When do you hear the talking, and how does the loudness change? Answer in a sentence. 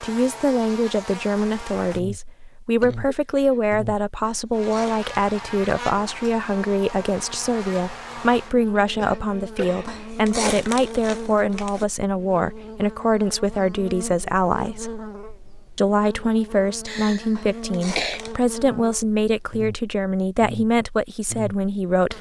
The talking can be heard from 0.0 to 14.9 s, at a steady volume; and from 15.8 to 22.1 s, at a steady volume.